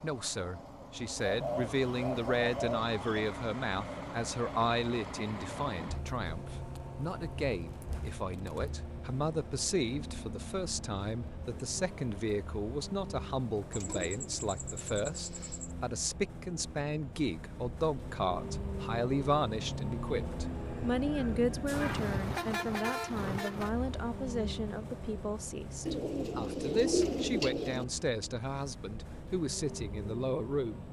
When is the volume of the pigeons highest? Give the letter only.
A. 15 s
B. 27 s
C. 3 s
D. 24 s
B.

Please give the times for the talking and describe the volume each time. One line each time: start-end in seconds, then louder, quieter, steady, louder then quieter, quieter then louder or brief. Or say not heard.
0.0-30.8 steady.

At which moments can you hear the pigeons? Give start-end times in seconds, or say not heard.
1.2-3.3, 13.7-15.8, 25.9-27.9.